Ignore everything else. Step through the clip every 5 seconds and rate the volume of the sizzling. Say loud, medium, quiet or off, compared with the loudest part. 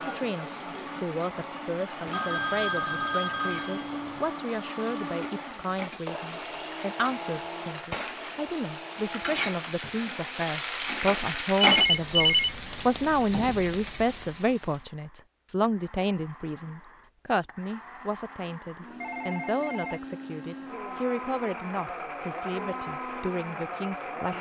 quiet, medium, loud, off, off.